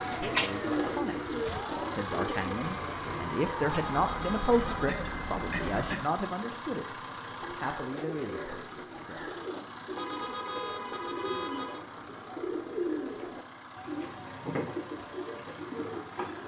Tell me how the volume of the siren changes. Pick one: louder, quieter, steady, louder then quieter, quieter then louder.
steady.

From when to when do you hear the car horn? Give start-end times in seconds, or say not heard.
3.6-4.9, 9.9-11.8.